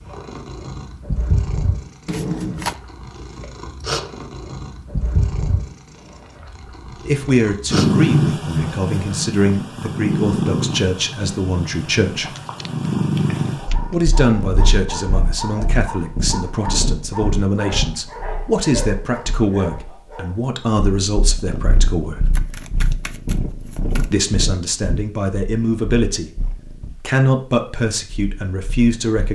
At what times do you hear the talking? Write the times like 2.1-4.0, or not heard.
7.0-12.3, 13.9-22.2, 24.1-26.3, 27.0-29.3.